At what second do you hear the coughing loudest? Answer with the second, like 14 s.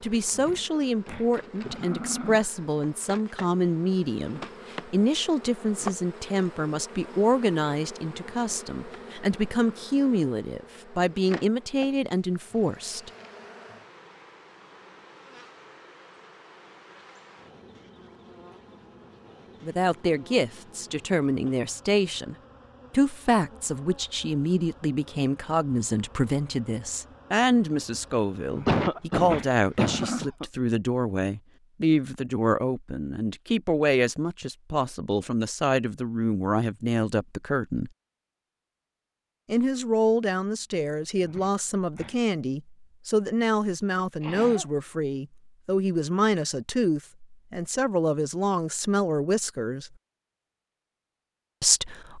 29 s.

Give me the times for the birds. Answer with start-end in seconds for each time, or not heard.
not heard.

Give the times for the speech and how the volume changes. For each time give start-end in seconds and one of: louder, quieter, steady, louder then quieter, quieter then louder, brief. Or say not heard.
0.0-13.1 steady
19.6-37.9 steady
39.5-49.9 steady
51.6-52.1 brief.